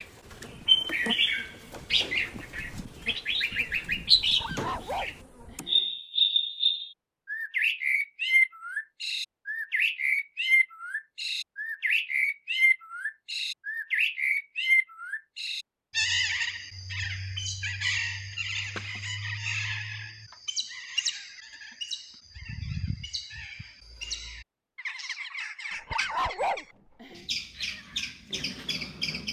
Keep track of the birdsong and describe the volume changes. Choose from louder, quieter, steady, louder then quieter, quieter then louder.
quieter.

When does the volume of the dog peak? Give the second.
26 s.